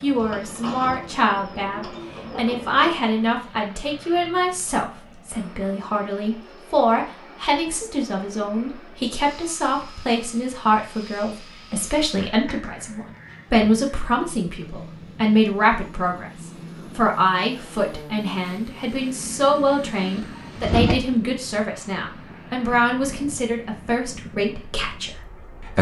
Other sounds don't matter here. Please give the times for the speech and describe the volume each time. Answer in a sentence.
The speech can be heard from 0.0 to 25.7 s, at a steady volume.